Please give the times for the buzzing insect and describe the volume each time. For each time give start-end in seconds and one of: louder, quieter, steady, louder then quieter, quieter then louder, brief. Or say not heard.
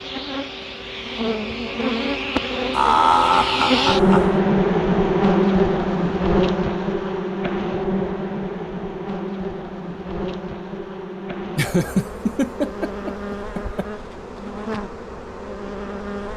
0.0-16.3 louder then quieter.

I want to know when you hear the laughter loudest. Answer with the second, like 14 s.
3 s.